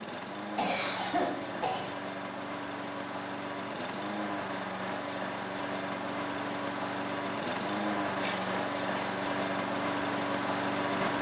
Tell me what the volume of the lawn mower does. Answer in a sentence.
The loudness of the lawn mower goes up.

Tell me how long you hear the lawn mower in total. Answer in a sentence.
You can hear the lawn mower for 11 seconds altogether.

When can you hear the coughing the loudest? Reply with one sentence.
The volume of the coughing peaks at 1 second.